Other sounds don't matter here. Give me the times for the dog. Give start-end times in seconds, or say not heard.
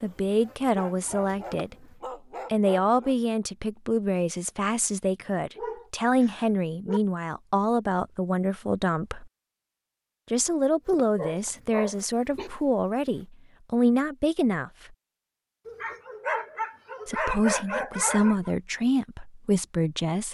0.6-3.1, 5.5-7.0, 11.2-12.5, 15.7-18.5.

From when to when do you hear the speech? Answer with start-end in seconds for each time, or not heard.
0.0-1.8, 2.5-9.2, 10.3-14.7, 17.1-20.2.